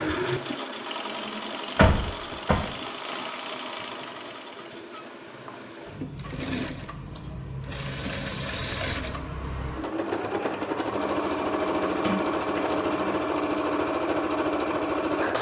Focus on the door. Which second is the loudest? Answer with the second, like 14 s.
2 s.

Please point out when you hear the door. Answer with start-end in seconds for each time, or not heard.
1.8-2.6, 12.0-13.2.